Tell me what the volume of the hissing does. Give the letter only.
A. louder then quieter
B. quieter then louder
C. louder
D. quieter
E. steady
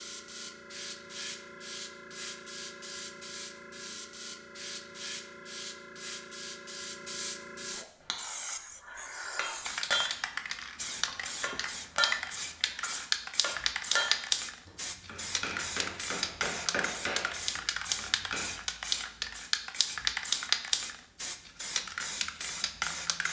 C.